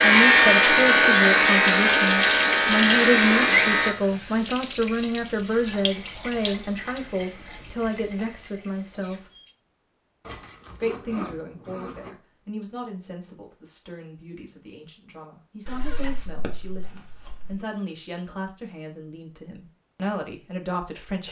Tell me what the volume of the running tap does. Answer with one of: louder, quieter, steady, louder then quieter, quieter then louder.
quieter.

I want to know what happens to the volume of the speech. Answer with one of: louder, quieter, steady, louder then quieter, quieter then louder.
quieter then louder.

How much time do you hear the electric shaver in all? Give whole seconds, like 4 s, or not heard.
4 s.